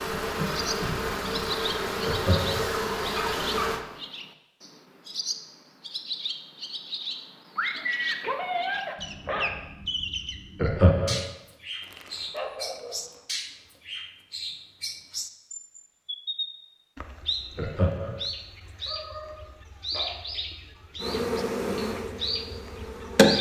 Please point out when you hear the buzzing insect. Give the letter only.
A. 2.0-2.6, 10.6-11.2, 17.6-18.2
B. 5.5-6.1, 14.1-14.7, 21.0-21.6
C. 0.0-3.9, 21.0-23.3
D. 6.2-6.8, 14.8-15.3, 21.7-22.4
C.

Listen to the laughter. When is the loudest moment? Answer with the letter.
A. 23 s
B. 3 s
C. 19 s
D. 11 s
D.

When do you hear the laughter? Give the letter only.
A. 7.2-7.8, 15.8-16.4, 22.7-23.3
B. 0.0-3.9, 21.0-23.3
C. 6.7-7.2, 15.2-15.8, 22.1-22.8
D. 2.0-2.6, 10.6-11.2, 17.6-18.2
D.